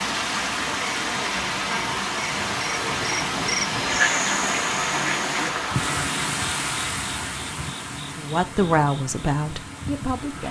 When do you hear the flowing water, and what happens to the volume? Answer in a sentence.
The flowing water can be heard from 0.0 to 10.4 s, getting quieter.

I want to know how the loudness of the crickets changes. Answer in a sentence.
The loudness of the crickets goes up, then down.